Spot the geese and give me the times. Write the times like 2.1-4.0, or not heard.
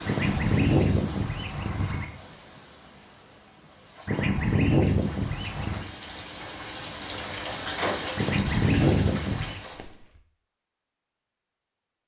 0.1-2.0, 4.0-5.8, 8.2-9.6.